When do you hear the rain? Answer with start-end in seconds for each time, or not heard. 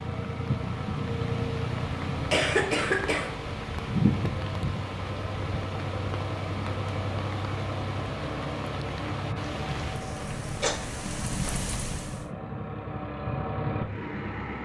0.0-12.3.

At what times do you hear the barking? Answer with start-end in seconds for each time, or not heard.
not heard.